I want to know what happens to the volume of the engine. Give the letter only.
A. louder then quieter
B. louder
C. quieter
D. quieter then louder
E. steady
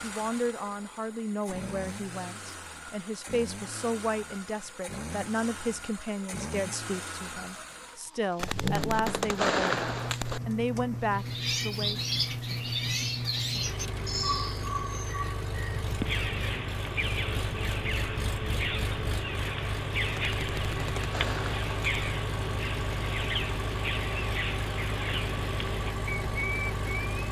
B.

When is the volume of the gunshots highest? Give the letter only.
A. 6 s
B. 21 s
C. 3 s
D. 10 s
D.